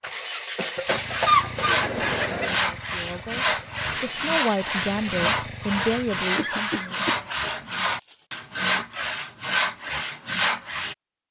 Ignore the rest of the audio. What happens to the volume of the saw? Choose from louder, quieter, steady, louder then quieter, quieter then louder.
steady.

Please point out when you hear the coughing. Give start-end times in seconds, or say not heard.
0.6-2.6, 6.3-8.2.